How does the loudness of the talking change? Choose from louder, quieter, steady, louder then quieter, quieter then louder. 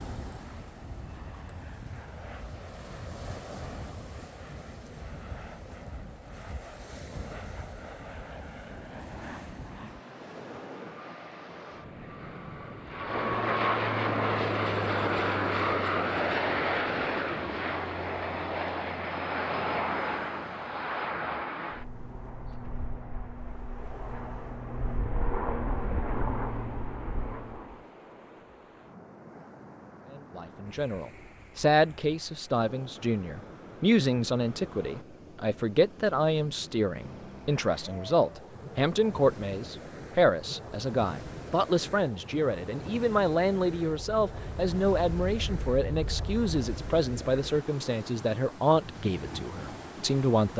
steady.